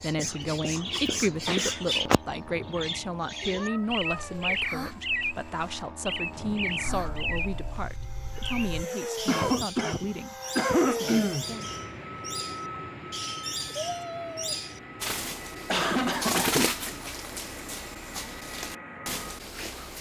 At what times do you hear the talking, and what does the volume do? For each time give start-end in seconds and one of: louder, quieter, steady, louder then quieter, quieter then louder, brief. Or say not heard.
0.0-11.8 quieter.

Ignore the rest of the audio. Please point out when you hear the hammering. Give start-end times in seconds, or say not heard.
not heard.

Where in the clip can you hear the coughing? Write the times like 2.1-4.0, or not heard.
0.2-2.0, 9.2-11.4, 15.7-16.8.